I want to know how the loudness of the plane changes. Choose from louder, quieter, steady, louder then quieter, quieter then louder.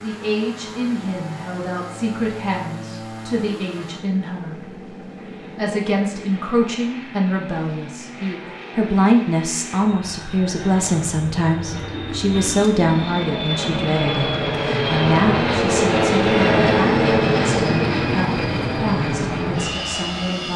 louder.